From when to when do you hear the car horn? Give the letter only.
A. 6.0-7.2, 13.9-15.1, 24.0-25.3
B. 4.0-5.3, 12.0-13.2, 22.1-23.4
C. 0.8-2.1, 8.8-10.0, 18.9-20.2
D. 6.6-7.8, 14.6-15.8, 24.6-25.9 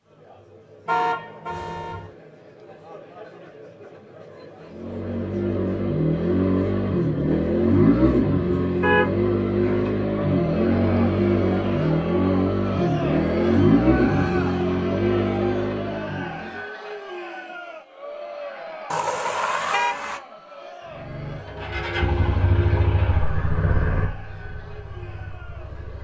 C.